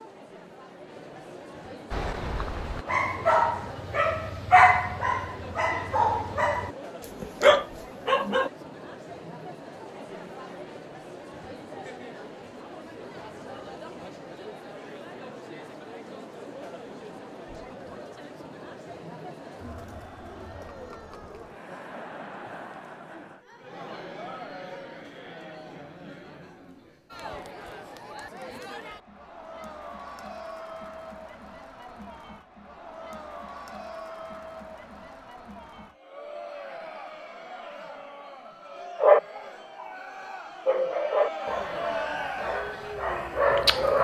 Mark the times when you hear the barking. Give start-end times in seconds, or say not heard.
1.9-8.5, 39.0-43.9.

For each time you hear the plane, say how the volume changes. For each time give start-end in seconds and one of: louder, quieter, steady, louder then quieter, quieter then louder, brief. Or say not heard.
not heard.